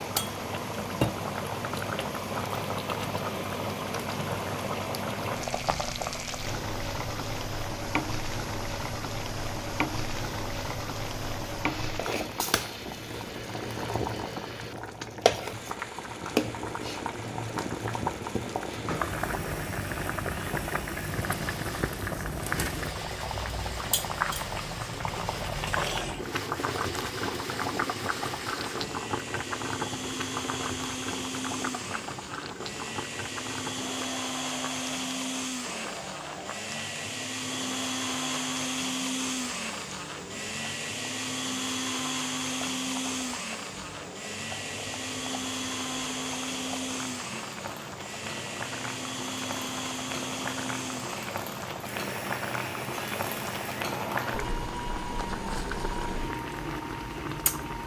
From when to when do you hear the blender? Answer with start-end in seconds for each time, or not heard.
0.0-57.8.